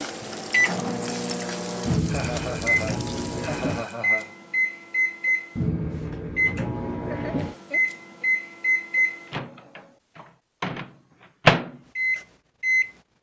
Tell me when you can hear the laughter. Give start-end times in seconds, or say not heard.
2.0-4.3, 7.0-8.2.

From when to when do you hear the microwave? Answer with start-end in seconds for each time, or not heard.
0.0-13.1.